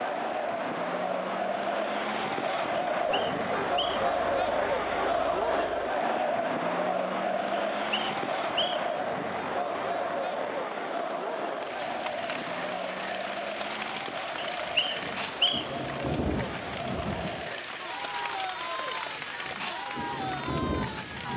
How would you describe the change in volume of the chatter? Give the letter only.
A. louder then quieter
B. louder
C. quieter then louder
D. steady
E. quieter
E.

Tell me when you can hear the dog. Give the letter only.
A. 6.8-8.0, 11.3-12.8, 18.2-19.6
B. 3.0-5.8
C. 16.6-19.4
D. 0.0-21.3
B.